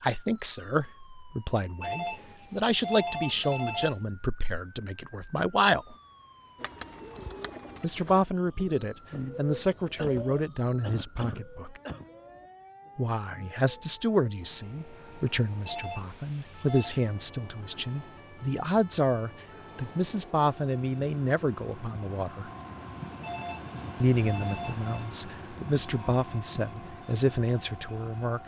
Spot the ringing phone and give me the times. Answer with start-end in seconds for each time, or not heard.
1.8-4.0, 15.7-16.9, 23.2-25.1.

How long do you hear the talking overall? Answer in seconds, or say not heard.
24 s.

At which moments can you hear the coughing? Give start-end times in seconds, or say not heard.
9.9-12.1.